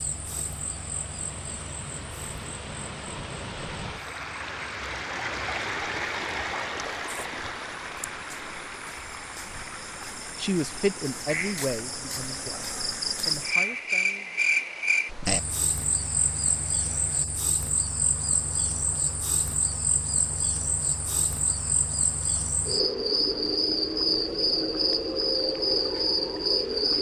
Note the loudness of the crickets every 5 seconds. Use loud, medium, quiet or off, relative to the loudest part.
quiet, quiet, loud, medium, loud, loud.